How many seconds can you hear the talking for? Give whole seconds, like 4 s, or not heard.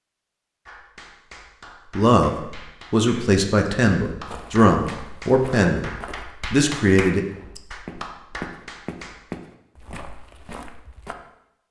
5 s.